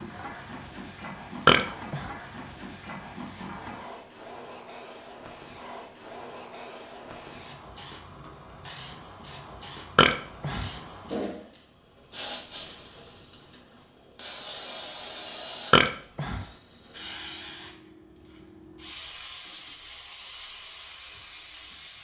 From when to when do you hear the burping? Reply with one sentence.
The burping can be heard from 1.4 to 2.1 s, from 9.9 to 10.7 s and from 15.7 to 16.4 s.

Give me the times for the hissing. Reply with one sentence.
The hissing can be heard from 0.0 to 21.9 s.